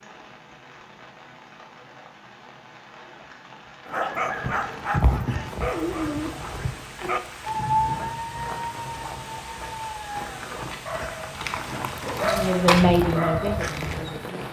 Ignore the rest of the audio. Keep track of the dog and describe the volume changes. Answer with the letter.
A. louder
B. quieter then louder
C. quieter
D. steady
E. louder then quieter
D.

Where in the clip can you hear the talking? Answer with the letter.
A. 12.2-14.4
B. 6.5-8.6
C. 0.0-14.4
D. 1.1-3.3
A.